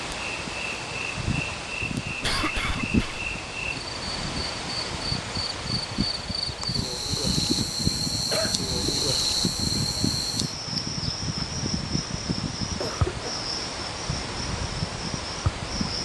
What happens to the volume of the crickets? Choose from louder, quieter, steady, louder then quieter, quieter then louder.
louder then quieter.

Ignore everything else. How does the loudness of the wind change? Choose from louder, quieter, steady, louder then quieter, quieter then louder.
steady.